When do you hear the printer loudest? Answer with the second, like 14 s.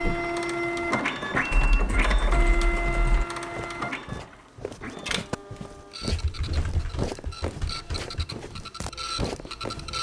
1 s.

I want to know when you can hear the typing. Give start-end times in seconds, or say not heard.
1.5-3.2, 6.0-8.2.